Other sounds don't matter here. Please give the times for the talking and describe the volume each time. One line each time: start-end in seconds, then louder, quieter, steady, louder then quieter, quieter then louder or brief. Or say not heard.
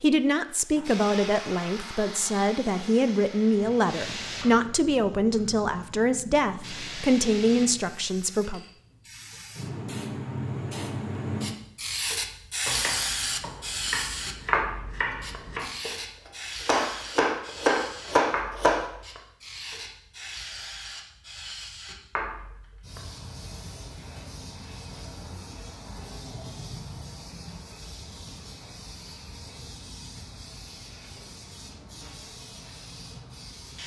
0.0-8.6 steady.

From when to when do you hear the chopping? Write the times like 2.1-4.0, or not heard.
12.7-15.9, 16.6-18.9.